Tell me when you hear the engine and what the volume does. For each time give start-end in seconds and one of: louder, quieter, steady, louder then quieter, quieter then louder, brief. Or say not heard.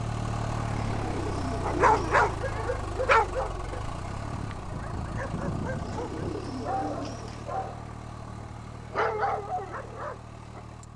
0.0-10.9 quieter.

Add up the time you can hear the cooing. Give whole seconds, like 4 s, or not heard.
3 s.